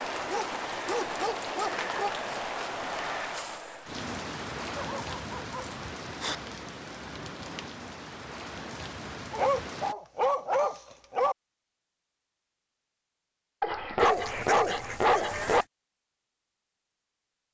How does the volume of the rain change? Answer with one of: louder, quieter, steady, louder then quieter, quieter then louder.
quieter.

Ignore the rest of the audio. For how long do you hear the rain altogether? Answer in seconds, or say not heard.
10 s.